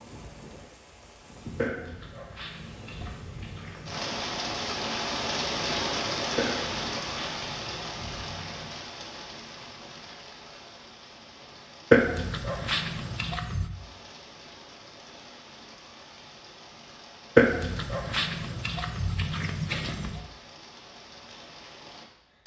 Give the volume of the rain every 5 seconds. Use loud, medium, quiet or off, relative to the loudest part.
medium, loud, quiet, quiet, quiet.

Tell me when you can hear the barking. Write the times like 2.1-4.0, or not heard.
1.6-4.0, 6.3-8.8, 11.9-13.7, 17.4-20.2.